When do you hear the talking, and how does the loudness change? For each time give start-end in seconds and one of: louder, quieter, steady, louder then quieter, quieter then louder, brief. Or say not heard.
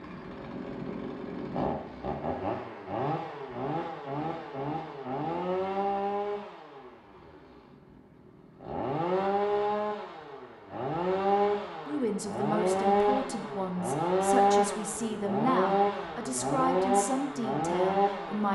11.8-18.5 steady.